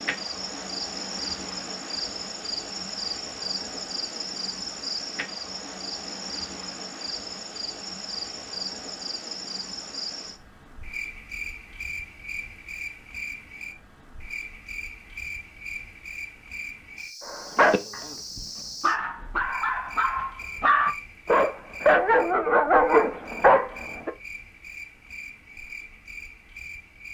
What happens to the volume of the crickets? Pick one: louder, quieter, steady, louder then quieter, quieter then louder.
quieter.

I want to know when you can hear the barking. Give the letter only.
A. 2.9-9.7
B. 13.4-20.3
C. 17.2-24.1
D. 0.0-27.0
C.